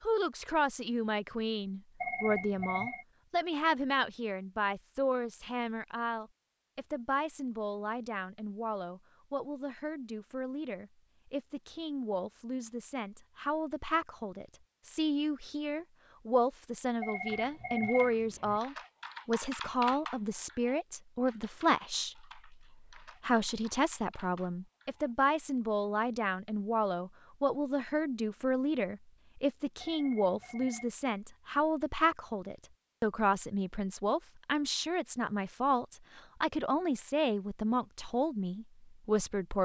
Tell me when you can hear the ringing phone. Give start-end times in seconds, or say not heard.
2.0-3.0, 17.0-18.6, 29.8-30.9.